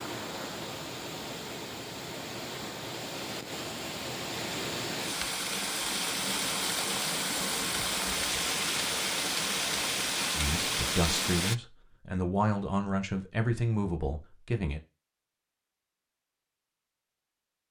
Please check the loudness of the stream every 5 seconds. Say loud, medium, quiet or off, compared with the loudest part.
medium, loud, loud, off.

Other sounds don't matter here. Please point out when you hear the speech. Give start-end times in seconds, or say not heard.
10.3-14.8.